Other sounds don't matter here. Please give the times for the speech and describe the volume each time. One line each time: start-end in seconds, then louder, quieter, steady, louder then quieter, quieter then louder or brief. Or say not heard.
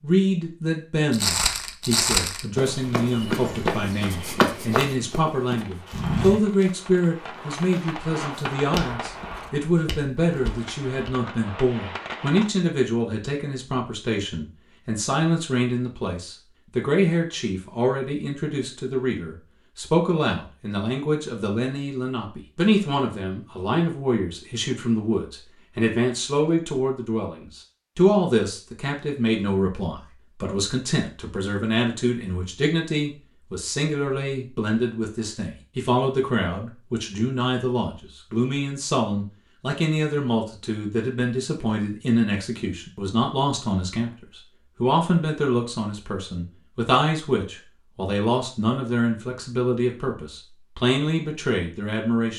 0.0-52.3 steady.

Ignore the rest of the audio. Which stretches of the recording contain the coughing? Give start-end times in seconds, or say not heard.
not heard.